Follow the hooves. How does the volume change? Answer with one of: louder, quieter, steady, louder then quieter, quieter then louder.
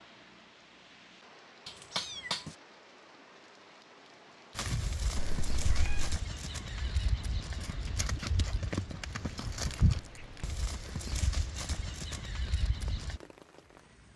louder then quieter.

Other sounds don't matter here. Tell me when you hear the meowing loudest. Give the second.
2 s.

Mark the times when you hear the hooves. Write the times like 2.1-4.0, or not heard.
4.5-13.2.